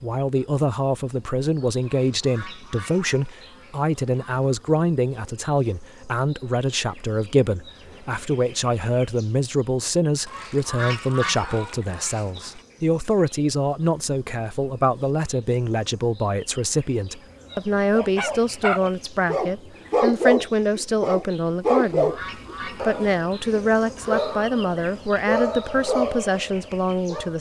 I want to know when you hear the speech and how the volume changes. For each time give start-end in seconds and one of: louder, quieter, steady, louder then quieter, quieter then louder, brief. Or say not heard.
0.0-27.3 steady.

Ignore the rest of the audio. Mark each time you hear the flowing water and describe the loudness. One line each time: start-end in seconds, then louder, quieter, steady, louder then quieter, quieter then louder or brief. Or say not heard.
not heard.